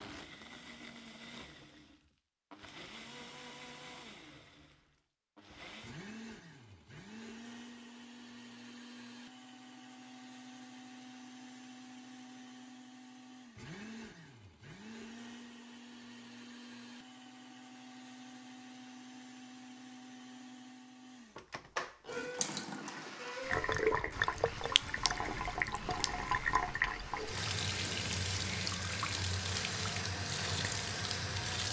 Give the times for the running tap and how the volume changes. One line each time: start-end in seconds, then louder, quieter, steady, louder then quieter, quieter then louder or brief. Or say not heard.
22.1-31.6 steady.